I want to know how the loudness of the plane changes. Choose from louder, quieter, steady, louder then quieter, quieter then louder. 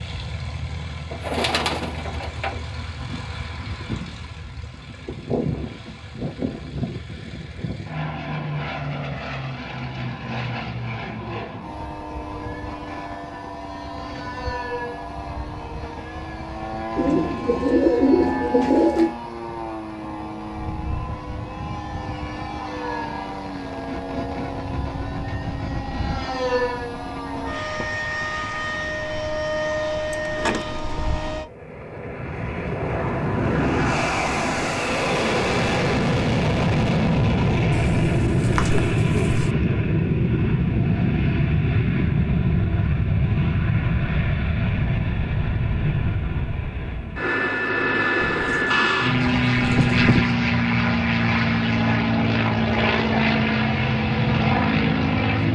louder.